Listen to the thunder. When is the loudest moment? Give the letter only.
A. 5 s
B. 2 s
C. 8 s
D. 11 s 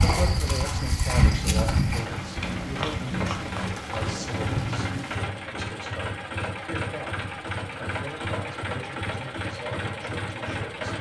A.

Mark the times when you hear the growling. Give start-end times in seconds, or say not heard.
not heard.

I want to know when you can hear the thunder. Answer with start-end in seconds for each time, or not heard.
1.9-5.3.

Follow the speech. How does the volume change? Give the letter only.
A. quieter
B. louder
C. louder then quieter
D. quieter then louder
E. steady
A.